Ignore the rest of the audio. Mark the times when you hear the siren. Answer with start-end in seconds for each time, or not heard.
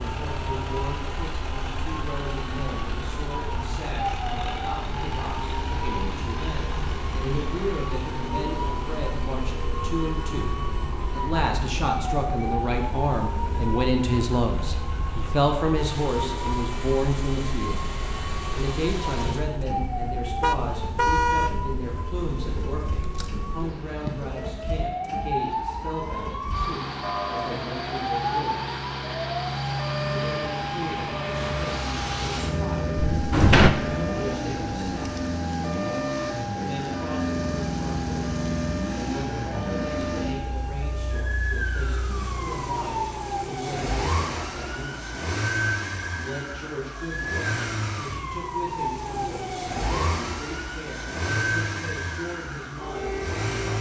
0.0-53.7.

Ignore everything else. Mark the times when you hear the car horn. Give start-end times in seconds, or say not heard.
20.4-21.5.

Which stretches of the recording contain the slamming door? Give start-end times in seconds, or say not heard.
23.0-23.5, 33.1-33.7.